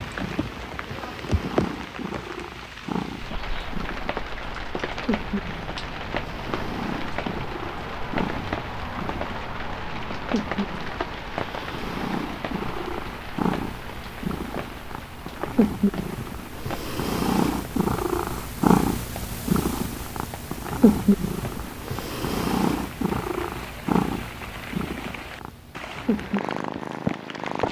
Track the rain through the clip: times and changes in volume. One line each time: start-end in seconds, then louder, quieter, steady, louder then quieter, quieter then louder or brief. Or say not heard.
0.0-27.6 quieter then louder.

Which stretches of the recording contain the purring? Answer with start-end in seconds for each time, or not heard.
0.0-27.6.